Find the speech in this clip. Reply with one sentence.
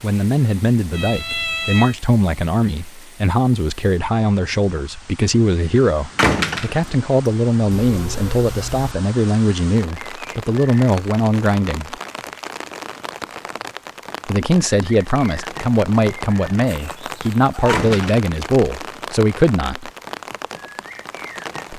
You can hear the speech from 0.0 to 11.9 s and from 14.2 to 19.9 s.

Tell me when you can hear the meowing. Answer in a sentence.
You can hear the meowing from 0.9 to 1.9 s, from 7.8 to 8.9 s and from 16.6 to 17.8 s.